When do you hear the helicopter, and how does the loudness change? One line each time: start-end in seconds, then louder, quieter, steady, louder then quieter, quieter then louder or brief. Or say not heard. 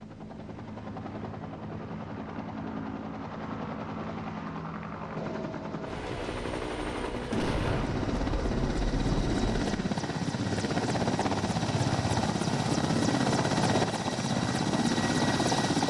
0.0-15.8 louder.